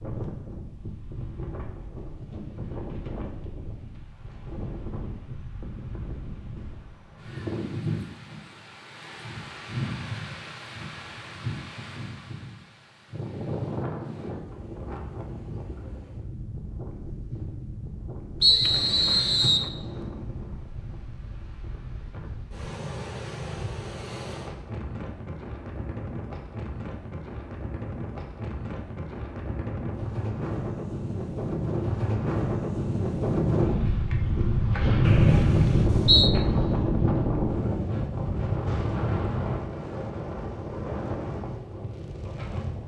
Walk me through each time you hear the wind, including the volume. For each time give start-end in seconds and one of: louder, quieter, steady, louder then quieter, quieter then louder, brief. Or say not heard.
0.0-42.8 louder.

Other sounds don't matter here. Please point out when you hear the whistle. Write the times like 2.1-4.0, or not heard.
18.4-19.7, 35.0-36.3.